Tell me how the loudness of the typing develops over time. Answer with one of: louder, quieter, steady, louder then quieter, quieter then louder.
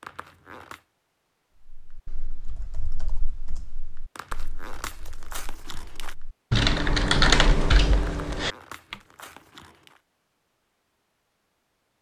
quieter then louder.